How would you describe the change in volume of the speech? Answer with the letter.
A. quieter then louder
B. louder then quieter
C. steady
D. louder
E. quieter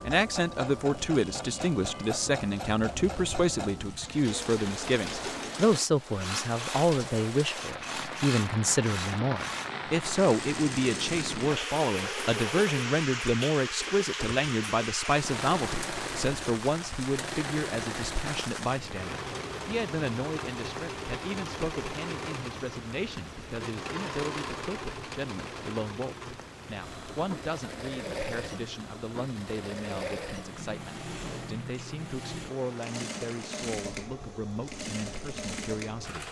E.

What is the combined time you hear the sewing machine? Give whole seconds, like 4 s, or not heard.
36 s.